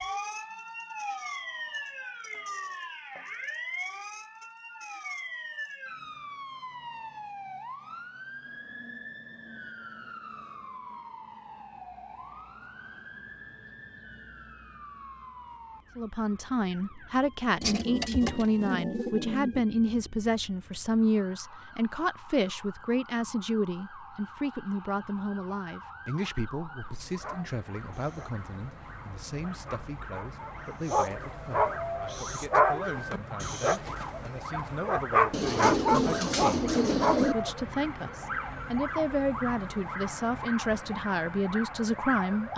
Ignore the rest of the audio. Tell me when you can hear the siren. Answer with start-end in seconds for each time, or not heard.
0.0-42.5.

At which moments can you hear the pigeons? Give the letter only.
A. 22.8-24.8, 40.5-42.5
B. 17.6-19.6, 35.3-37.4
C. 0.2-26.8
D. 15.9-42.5
B.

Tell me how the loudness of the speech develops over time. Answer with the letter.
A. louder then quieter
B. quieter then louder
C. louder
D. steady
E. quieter
B.